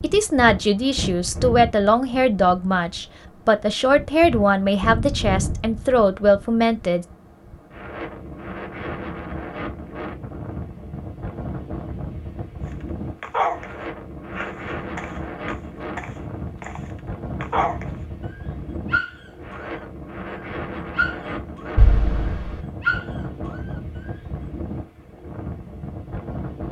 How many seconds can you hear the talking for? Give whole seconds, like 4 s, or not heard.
7 s.